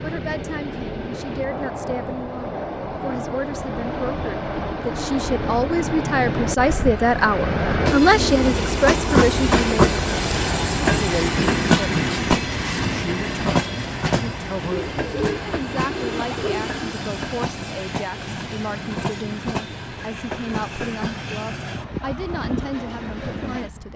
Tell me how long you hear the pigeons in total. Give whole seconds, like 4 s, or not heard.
2 s.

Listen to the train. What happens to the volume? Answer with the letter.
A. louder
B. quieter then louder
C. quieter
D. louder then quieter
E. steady
D.